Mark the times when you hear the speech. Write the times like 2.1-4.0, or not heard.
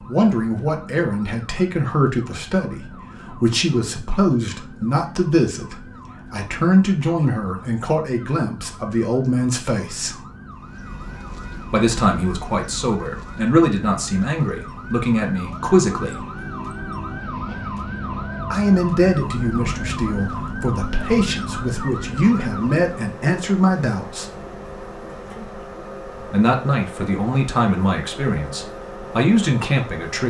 0.1-10.2, 11.7-16.2, 18.5-24.2, 26.1-30.2.